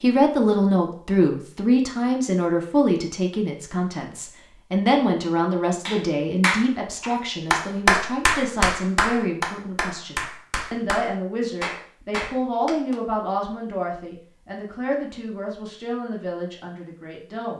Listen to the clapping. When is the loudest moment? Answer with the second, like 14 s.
8 s.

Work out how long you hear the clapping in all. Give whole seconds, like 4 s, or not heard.
7 s.